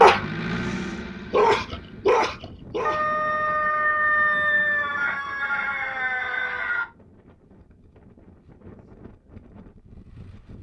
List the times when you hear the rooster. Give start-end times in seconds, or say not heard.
2.8-6.8.